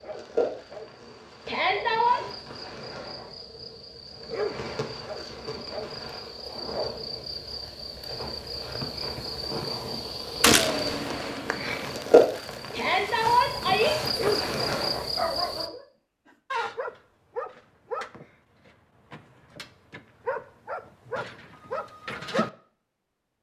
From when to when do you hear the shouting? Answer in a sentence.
You can hear the shouting from 1.4 to 2.2 s and from 12.7 to 13.9 s.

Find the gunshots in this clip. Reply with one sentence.
The gunshots can be heard from 10.4 to 11.0 s.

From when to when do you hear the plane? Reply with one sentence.
The plane can be heard from 10.6 to 12.0 s.